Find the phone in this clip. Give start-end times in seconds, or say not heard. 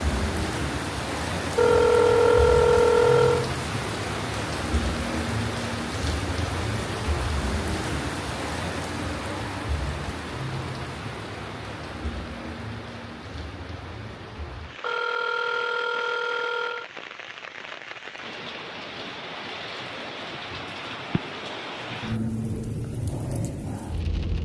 1.6-3.5, 14.8-16.9.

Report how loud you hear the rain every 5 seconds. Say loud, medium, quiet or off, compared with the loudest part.
loud, loud, medium, medium, loud.